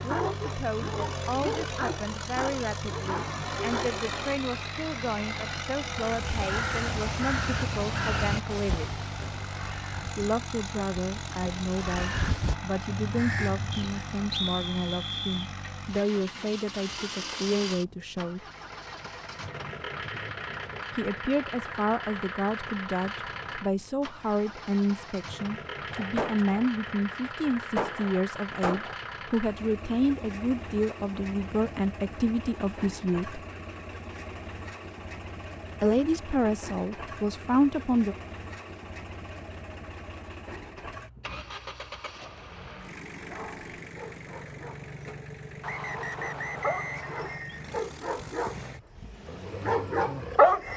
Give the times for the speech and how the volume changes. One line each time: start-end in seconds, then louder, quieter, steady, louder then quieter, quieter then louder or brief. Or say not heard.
0.0-8.9 steady
10.2-18.4 steady
20.9-33.4 steady
35.8-38.1 brief.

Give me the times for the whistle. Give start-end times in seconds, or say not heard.
13.7-15.5, 45.6-47.5.